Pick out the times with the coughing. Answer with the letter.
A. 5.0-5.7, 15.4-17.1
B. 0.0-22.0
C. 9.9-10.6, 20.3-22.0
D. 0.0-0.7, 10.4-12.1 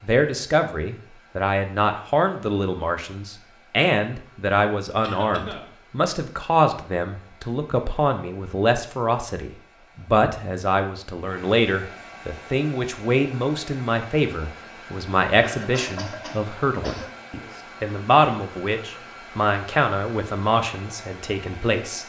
A.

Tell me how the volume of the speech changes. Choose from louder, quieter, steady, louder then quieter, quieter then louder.
steady.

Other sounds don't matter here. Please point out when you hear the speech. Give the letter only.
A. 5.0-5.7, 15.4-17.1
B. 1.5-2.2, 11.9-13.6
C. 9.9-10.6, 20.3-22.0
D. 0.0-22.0
D.